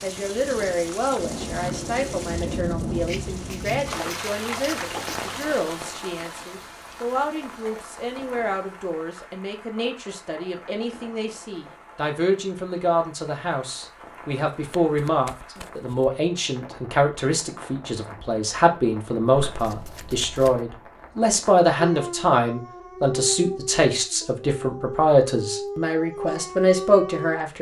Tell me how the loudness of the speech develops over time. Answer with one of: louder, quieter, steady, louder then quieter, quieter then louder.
louder.